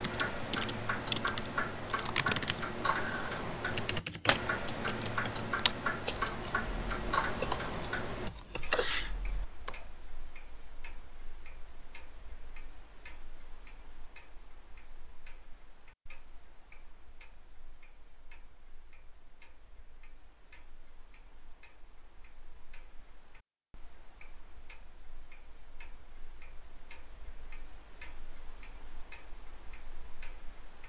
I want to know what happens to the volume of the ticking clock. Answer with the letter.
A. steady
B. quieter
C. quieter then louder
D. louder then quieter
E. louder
C.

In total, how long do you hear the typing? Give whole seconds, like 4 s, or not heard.
10 s.